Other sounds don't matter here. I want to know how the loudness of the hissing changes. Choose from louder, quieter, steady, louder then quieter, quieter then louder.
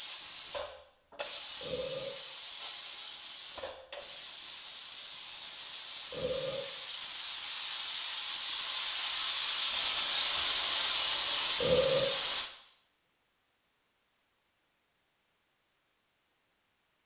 louder.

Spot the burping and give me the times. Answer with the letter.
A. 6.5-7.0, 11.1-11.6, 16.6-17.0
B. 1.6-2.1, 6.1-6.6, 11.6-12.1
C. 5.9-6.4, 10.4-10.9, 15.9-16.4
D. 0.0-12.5
B.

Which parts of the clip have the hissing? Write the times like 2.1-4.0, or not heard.
0.0-12.5.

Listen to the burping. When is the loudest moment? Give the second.
12 s.